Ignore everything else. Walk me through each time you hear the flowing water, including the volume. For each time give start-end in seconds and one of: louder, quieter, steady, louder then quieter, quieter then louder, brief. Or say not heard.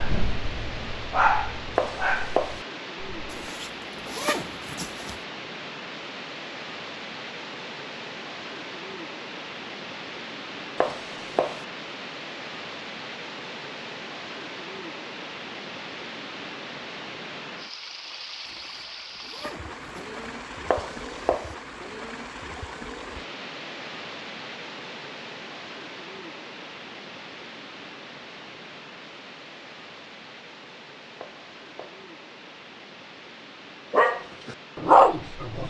0.0-35.6 quieter.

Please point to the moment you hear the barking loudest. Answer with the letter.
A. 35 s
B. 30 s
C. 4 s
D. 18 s
A.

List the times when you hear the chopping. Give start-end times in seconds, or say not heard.
1.8-2.6, 10.8-11.7, 20.7-21.6, 31.2-32.0.